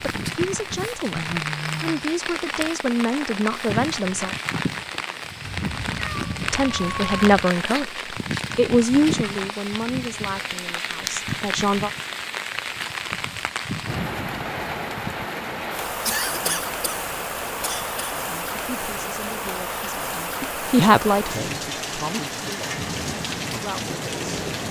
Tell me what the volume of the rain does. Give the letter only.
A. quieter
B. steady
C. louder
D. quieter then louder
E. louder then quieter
B.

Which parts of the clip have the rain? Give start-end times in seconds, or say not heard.
0.0-24.6.